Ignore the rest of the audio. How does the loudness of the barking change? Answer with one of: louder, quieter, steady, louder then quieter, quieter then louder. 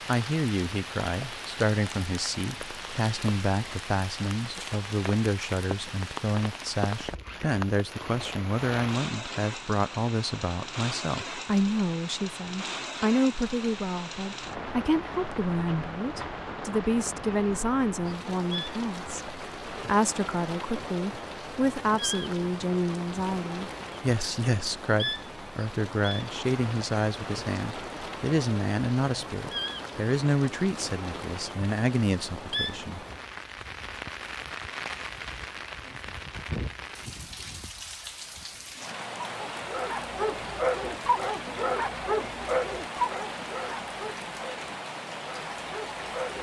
quieter.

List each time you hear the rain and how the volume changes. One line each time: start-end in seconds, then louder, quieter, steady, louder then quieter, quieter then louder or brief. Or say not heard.
0.0-46.3 steady.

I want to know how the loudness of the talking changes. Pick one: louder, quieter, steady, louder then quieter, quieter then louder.
steady.